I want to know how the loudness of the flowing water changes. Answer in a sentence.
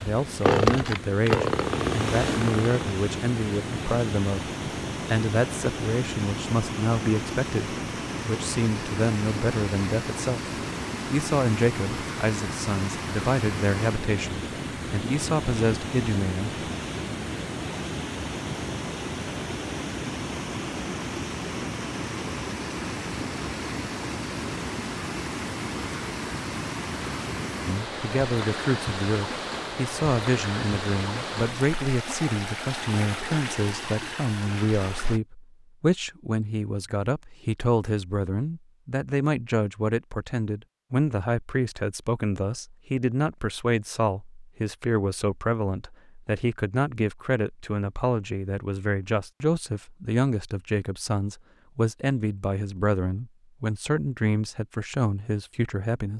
The volume of the flowing water stays about the same.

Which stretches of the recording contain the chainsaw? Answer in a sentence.
The chainsaw can be heard from 0.0 to 3.0 s.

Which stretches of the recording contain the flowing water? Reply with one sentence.
The flowing water can be heard from 0.0 to 35.2 s.